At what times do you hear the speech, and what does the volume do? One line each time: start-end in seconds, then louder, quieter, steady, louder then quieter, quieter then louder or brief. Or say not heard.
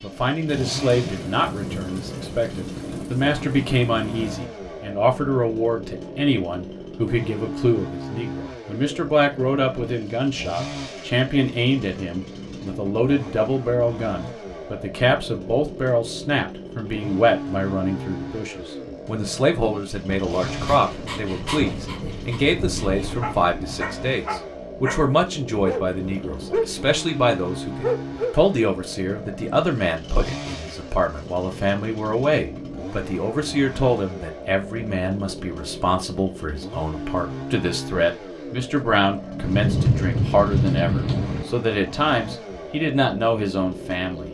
0.0-44.2 steady.